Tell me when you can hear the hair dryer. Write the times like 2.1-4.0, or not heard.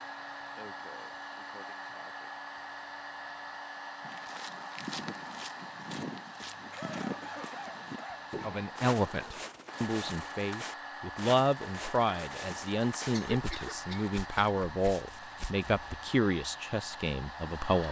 0.0-17.8.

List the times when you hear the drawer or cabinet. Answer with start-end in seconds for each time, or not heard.
not heard.